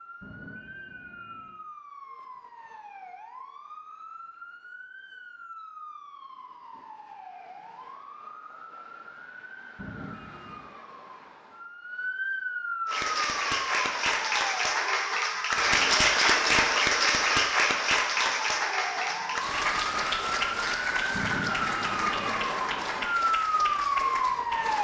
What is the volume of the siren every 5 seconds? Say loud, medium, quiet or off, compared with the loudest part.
quiet, quiet, medium, medium, loud.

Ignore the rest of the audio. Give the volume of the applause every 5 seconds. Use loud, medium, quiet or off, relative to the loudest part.
off, off, loud, loud, medium.